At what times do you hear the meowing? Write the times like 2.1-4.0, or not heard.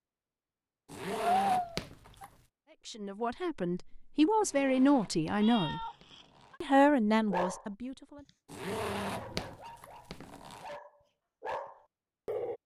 1.4-2.2, 5.3-6.6, 8.7-9.7.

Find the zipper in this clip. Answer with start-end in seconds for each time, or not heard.
0.8-2.4, 4.4-6.6, 8.4-10.7.